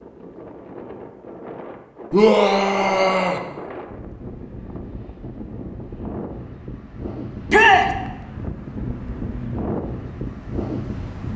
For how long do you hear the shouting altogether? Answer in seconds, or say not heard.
2 s.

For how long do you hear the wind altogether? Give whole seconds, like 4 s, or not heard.
11 s.